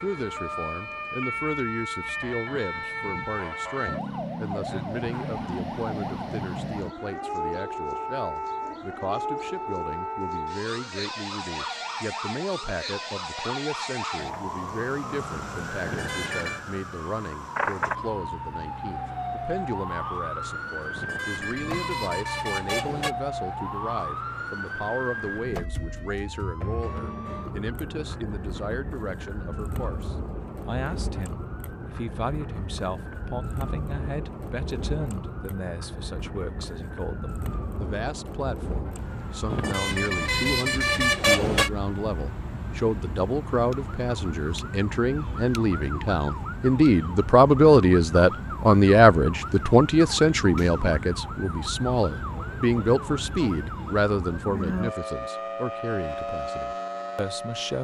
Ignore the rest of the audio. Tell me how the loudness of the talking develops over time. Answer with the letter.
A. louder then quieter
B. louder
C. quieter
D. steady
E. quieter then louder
B.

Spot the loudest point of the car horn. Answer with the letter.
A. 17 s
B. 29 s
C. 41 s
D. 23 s
C.